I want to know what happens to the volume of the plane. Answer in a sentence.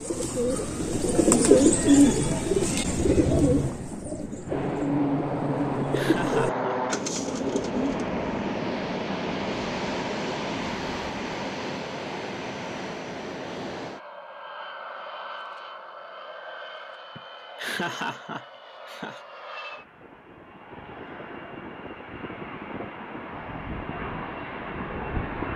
The volume of the plane goes down, then up.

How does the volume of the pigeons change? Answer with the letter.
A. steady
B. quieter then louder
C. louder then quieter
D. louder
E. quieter
E.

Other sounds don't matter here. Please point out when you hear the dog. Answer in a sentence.
You can't hear the dog here.